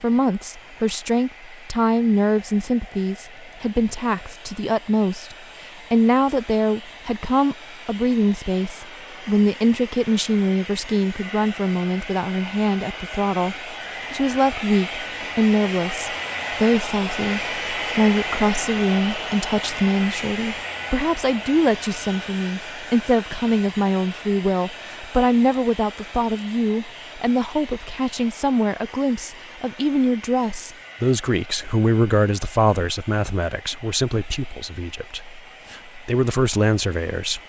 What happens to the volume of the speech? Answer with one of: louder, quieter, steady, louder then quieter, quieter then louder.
steady.